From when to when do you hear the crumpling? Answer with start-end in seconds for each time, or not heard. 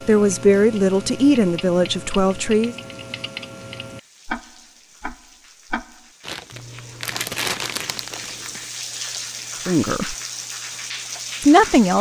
6.2-8.7.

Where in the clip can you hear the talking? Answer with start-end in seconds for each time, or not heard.
0.1-2.8, 9.7-10.2, 11.4-11.9.